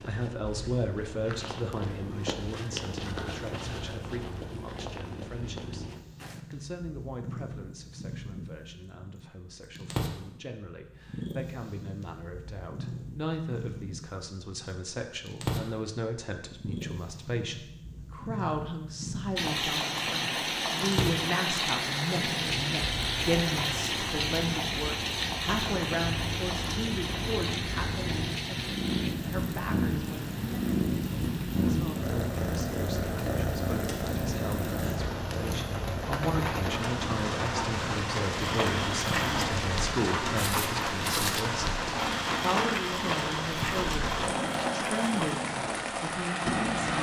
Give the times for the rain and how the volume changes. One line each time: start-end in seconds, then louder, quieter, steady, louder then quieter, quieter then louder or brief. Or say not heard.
19.4-46.9 quieter then louder.